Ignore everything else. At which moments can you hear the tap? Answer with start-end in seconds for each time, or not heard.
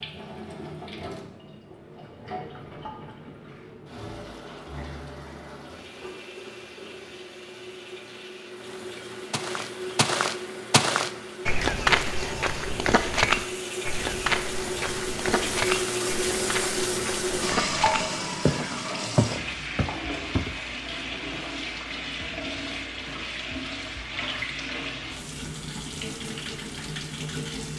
0.0-27.7.